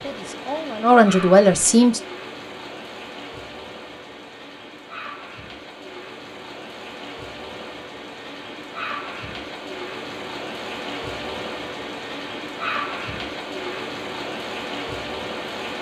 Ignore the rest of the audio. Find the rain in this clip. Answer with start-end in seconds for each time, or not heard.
0.0-15.7.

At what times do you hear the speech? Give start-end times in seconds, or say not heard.
0.0-2.0.